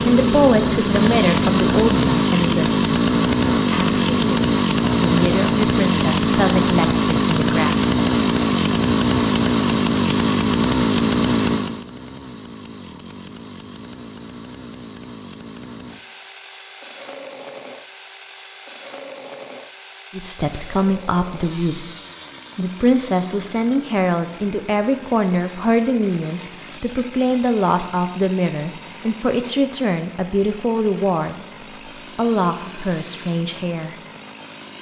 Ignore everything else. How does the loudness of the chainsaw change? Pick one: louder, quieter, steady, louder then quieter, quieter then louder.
quieter.